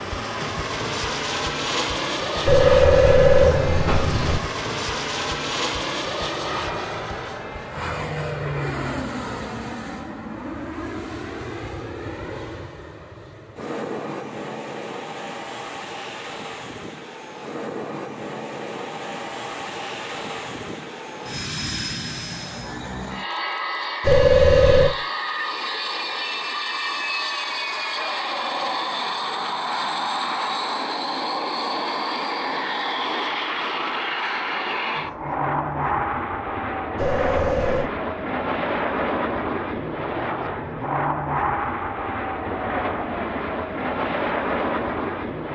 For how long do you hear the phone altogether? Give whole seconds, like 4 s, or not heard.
4 s.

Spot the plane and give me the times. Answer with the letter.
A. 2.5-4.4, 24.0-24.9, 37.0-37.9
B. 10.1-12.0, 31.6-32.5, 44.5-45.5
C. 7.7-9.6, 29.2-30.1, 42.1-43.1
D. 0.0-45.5
D.